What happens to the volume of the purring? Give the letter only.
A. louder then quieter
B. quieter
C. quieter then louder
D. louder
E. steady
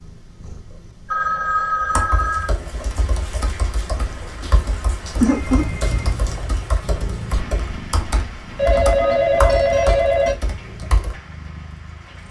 A.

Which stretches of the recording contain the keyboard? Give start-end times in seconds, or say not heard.
1.8-11.2.